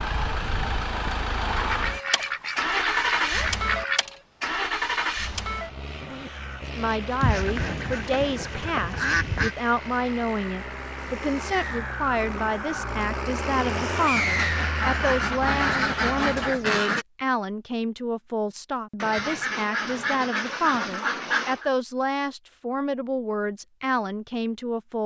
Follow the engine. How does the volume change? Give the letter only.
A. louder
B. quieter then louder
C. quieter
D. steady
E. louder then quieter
B.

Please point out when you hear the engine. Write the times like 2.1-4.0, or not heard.
0.0-16.5.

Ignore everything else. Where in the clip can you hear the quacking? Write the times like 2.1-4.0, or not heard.
1.1-4.0, 7.2-9.6, 14.2-17.1, 19.0-21.7.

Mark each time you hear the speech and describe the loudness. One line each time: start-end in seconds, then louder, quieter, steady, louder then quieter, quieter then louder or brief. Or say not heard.
6.8-25.0 steady.